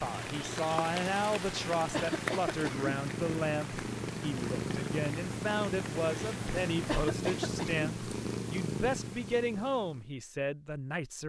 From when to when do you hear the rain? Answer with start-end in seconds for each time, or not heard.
0.0-7.0.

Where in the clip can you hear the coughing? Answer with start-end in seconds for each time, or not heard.
1.9-2.9, 6.8-7.8.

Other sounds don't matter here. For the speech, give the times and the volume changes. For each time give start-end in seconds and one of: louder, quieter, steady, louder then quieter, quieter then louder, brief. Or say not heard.
0.0-11.2 steady.